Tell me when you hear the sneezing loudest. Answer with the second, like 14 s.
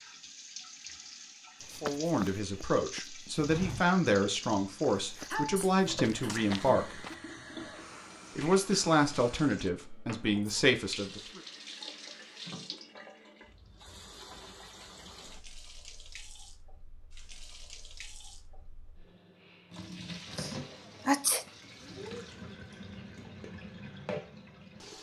21 s.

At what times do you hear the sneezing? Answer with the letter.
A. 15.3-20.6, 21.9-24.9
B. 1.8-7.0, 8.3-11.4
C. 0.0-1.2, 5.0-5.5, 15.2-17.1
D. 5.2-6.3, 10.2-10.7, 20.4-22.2
D.